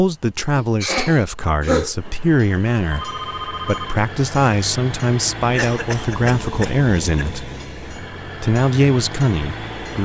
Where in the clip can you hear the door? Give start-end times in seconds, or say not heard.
not heard.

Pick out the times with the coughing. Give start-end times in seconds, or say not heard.
0.6-1.9, 5.5-7.2.